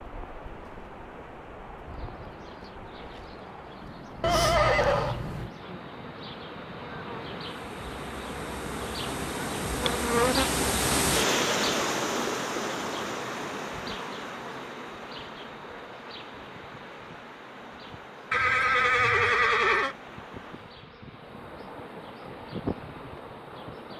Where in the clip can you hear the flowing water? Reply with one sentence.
The flowing water can be heard from 0.0 to 23.9 s.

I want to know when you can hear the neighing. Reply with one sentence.
The neighing can be heard from 4.2 to 5.5 s and from 18.3 to 19.9 s.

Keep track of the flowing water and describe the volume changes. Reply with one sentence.
The loudness of the flowing water goes up, then down.